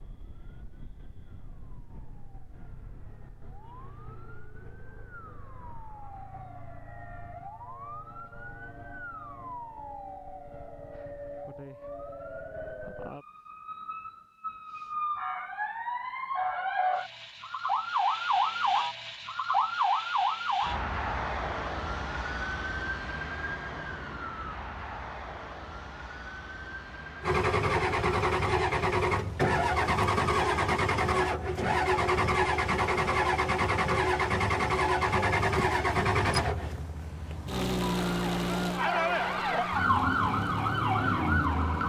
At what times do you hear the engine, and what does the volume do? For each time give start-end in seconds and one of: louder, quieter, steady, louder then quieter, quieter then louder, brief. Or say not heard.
27.2-41.8 quieter.